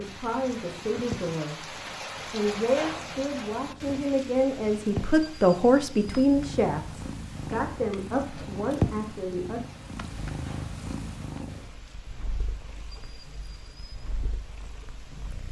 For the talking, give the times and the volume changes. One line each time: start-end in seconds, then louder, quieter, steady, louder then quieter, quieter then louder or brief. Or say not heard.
0.0-9.6 louder then quieter.